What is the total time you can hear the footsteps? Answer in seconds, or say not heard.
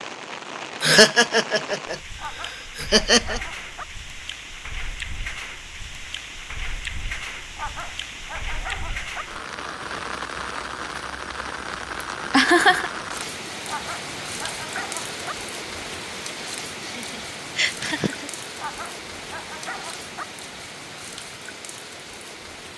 not heard.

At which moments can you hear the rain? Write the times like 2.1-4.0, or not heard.
0.0-22.7.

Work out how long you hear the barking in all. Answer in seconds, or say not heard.
7 s.